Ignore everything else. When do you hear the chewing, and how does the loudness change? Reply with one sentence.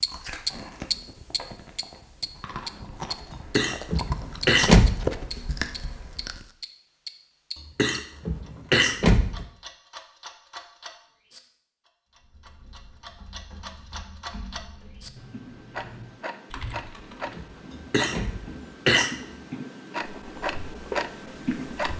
You can hear the chewing from 0.1 to 6.5 s, getting louder; and briefly from 20.1 to 21.9 s.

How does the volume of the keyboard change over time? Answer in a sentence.
The volume of the keyboard goes up.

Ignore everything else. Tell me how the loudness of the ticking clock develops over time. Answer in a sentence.
The loudness of the ticking clock goes down, then up.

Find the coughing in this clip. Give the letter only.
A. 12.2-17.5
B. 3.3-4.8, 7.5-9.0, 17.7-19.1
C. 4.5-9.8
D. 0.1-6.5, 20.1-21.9
B.